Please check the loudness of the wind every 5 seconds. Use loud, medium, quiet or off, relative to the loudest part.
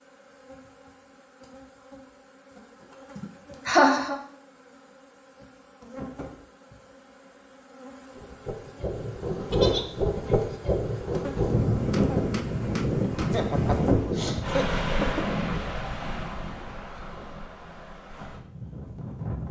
off, loud, loud, medium.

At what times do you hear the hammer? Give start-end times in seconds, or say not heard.
11.8-13.4.